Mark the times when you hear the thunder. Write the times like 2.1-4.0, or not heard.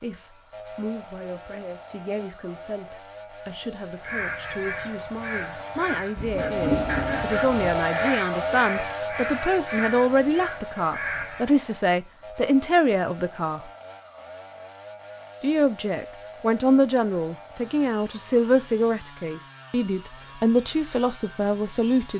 6.2-7.8.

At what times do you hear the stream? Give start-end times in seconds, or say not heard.
not heard.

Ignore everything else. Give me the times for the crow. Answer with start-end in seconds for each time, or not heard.
4.0-11.5.